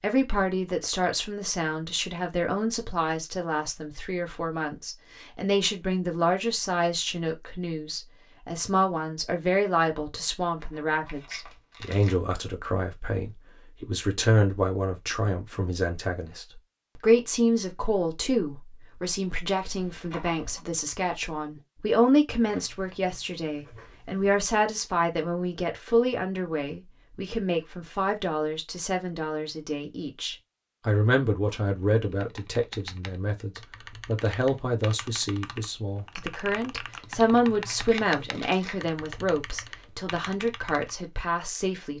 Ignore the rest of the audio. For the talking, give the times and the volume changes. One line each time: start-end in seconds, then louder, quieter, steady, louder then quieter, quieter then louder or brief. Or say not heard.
0.0-41.9 steady.